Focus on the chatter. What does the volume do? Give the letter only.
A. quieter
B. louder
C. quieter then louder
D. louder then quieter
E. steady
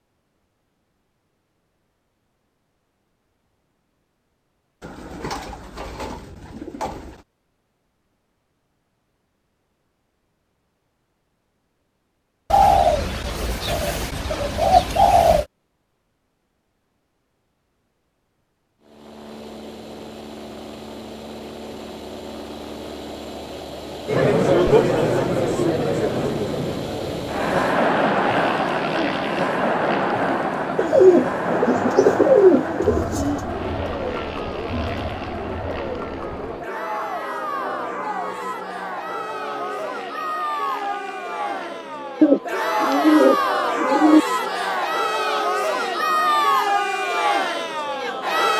C.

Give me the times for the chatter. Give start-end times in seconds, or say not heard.
24.1-48.5.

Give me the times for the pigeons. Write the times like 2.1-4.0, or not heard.
4.8-7.2, 12.5-15.4, 30.8-33.4, 42.2-44.2.